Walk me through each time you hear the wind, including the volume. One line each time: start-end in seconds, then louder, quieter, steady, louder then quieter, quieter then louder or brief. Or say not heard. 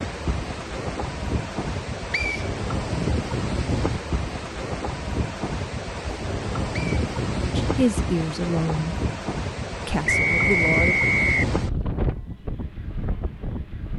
0.0-13.9 steady.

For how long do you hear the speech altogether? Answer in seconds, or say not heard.
3 s.